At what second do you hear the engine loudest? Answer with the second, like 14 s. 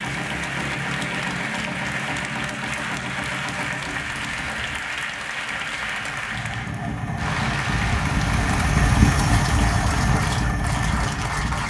9 s.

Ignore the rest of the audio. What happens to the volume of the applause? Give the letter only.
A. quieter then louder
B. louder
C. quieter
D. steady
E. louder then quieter
D.